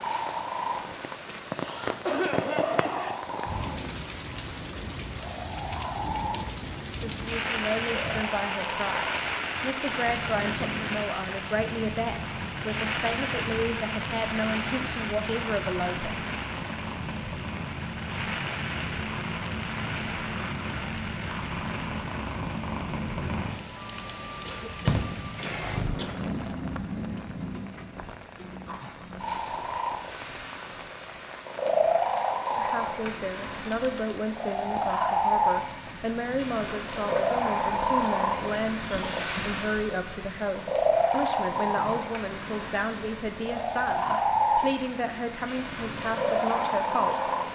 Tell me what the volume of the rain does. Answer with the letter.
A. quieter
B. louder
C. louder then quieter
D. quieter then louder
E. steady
A.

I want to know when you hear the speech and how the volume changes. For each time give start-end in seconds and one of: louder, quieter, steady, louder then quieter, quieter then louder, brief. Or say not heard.
7.0-16.3 steady
32.5-47.2 steady.